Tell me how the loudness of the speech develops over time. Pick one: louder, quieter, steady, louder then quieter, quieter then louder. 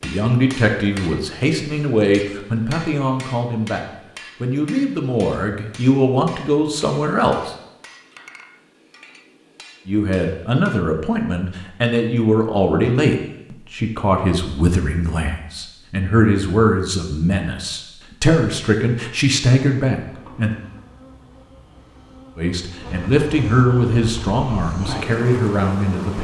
steady.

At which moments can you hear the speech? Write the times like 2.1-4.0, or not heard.
0.0-7.5, 9.8-20.6, 22.4-26.1.